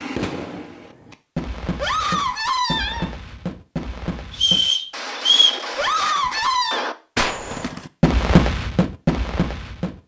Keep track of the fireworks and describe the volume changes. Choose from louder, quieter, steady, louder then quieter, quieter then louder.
louder.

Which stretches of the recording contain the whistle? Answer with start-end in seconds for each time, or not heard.
4.3-5.7.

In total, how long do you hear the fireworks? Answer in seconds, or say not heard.
10 s.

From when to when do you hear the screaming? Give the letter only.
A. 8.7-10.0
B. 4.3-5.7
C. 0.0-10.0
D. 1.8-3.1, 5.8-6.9
D.